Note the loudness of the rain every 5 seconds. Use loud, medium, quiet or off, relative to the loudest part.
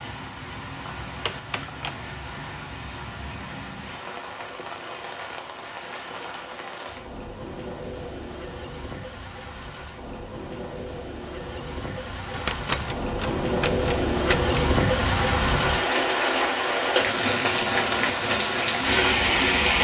quiet, quiet, medium, loud.